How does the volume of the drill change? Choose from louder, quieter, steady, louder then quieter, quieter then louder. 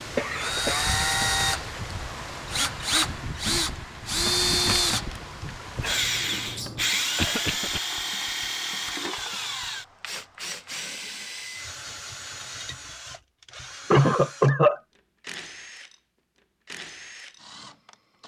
quieter.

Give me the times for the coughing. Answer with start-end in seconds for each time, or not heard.
0.1-0.9, 7.2-7.8, 13.9-14.8.